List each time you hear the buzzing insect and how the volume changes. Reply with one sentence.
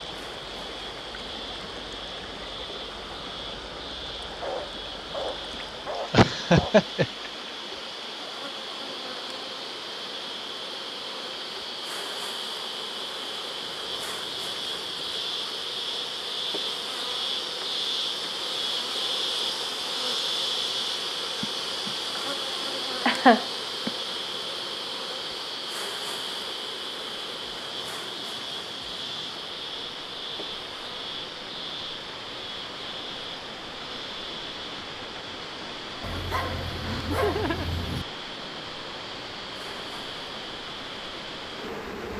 You can hear the buzzing insect from 0.0 to 42.1 s, getting louder then quieter.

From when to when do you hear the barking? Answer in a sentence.
You can hear the barking from 4.2 to 6.9 s and from 36.0 to 38.0 s.